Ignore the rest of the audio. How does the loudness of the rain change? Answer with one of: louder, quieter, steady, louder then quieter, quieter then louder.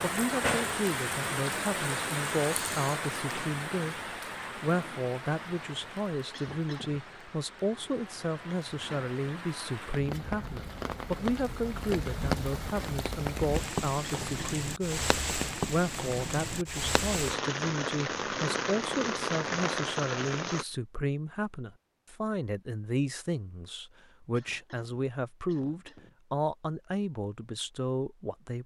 quieter then louder.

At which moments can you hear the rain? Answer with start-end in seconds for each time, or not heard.
0.0-20.6.